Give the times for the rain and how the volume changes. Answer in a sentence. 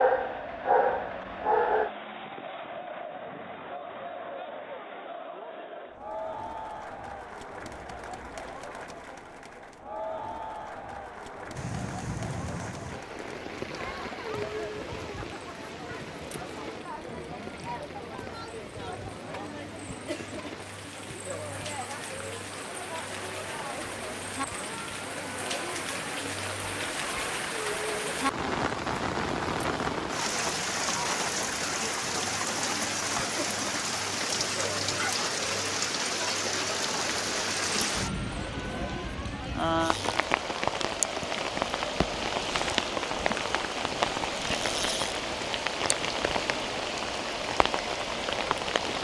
You can hear the rain from 11.6 to 48.9 s, getting louder.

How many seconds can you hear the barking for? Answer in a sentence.
You can hear the barking for 2 seconds altogether.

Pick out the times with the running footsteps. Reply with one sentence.
The running footsteps can't be heard in this clip.